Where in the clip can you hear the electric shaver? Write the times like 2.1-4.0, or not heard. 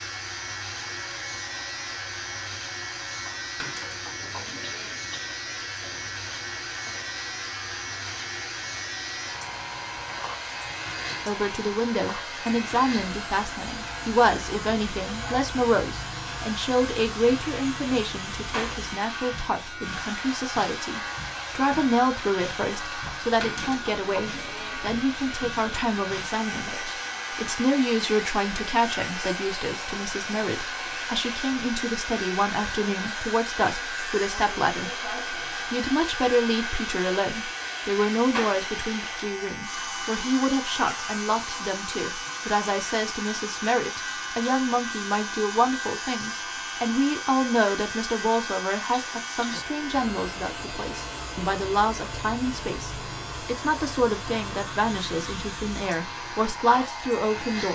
0.0-57.6.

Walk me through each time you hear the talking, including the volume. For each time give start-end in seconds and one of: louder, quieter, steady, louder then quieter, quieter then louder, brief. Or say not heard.
11.2-57.6 steady.